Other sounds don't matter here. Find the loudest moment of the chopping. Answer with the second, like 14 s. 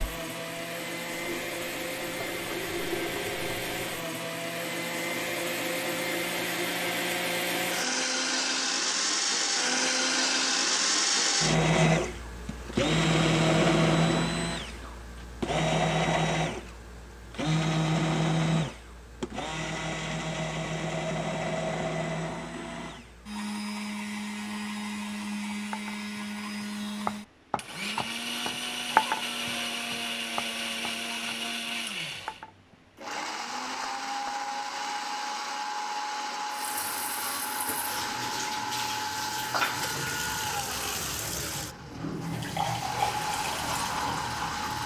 29 s.